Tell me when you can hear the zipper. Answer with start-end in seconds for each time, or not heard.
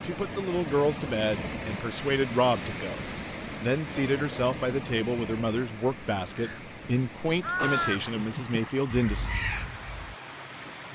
not heard.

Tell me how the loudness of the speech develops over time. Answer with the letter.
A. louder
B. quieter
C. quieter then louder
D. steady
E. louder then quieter
D.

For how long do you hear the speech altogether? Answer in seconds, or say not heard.
9 s.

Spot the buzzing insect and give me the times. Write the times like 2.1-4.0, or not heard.
not heard.